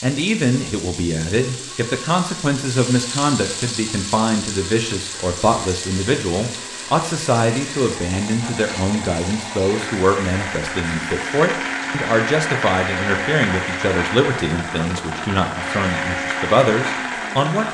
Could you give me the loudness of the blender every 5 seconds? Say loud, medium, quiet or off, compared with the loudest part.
quiet, medium, loud, loud.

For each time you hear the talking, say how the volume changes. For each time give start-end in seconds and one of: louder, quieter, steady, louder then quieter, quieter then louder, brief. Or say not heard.
0.0-17.6 steady.